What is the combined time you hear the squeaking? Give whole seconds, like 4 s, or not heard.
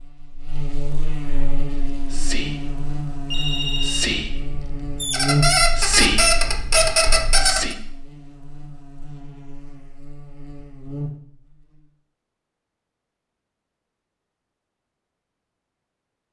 3 s.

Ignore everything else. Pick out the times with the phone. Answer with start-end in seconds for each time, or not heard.
3.3-4.2.